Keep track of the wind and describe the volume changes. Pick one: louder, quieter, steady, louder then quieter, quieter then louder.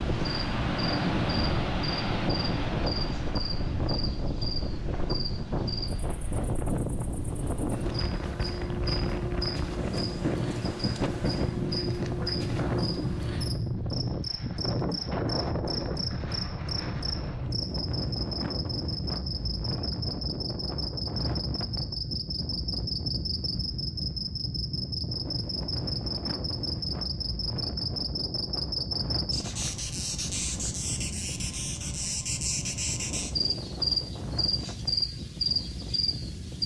quieter.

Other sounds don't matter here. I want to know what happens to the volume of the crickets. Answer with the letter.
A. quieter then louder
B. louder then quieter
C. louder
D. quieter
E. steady
C.